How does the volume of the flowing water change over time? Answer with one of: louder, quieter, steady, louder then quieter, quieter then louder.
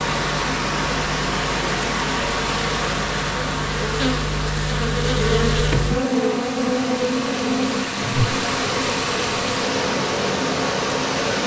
quieter then louder.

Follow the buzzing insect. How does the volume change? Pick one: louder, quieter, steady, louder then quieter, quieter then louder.
louder then quieter.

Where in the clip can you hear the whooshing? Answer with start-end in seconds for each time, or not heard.
8.0-8.4.